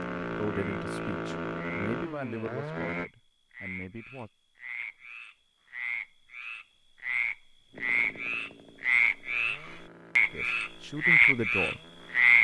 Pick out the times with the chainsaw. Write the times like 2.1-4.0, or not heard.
0.0-3.1, 7.7-12.3.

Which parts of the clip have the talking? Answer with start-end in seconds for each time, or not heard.
0.2-4.3, 10.3-12.3.